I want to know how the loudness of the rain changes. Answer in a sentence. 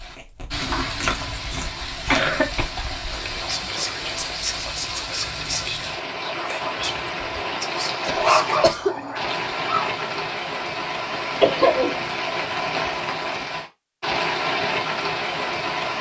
The loudness of the rain goes up.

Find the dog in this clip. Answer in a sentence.
The dog can be heard from 8.2 to 10.1 s.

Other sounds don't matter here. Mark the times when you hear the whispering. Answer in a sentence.
The whispering can be heard from 3.0 to 9.3 s.